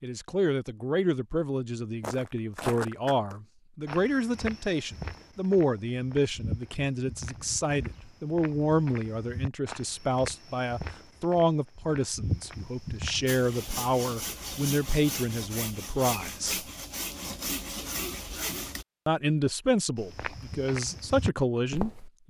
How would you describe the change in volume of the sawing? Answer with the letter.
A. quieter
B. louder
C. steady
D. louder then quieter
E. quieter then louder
C.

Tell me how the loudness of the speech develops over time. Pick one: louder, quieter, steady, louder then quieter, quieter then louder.
steady.